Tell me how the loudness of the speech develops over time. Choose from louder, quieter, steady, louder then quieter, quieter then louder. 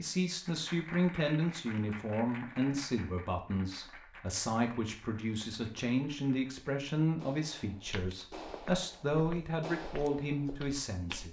steady.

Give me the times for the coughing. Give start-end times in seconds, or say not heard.
not heard.